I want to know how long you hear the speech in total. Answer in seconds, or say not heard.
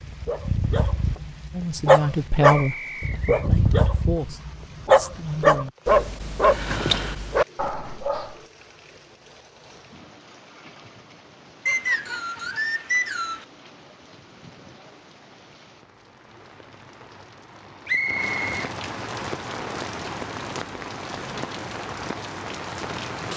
4 s.